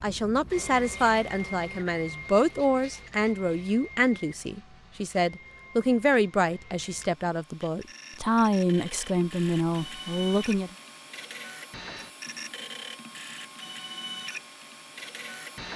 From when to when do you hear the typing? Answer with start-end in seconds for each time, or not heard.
not heard.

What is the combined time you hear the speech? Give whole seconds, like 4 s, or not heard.
11 s.